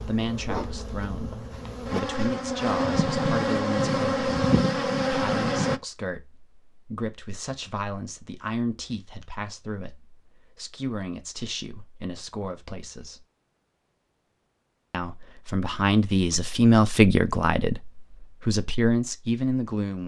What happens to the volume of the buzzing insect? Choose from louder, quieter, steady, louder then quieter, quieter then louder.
louder.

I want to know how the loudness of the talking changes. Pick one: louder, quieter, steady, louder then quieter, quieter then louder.
louder.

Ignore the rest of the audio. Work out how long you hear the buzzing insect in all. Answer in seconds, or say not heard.
6 s.